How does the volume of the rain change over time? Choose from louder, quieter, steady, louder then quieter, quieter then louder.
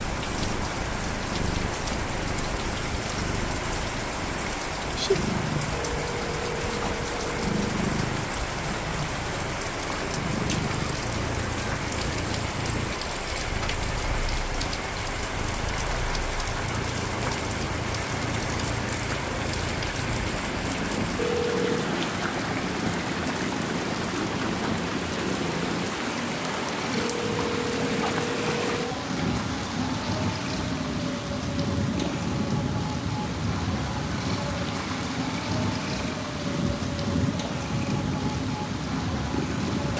steady.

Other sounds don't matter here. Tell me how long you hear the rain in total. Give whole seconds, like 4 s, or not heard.
40 s.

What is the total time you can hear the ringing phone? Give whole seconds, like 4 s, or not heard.
5 s.